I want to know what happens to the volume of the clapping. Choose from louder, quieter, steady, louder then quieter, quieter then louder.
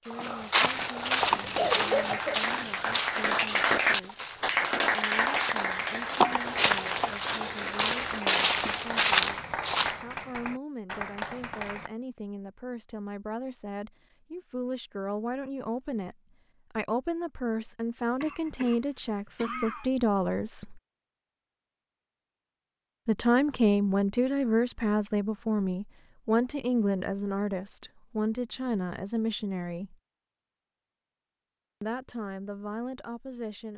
quieter.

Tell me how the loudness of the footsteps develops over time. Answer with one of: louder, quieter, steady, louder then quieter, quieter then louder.
quieter then louder.